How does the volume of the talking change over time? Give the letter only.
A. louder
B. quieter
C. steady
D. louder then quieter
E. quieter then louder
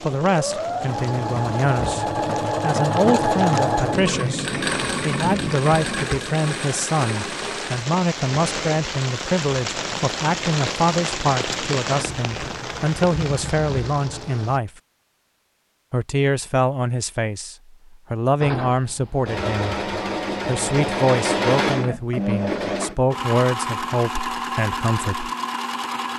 C.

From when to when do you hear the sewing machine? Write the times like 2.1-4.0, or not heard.
0.0-14.5, 18.4-26.1.